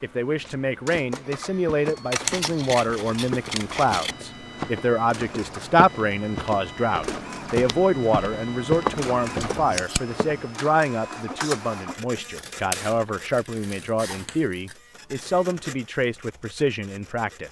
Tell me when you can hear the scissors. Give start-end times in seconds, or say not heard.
2.1-4.2, 9.4-10.1, 12.2-14.8.